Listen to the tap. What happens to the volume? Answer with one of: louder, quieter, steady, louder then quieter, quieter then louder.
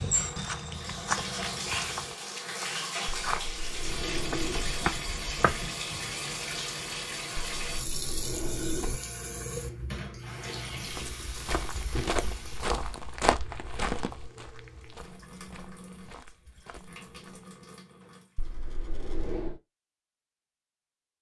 quieter.